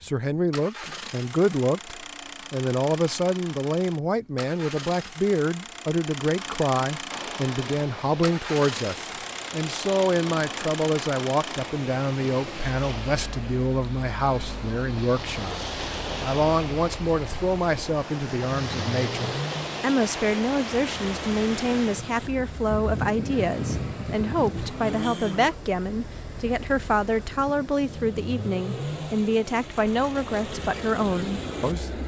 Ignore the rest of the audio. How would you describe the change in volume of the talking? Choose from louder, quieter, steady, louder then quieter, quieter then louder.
steady.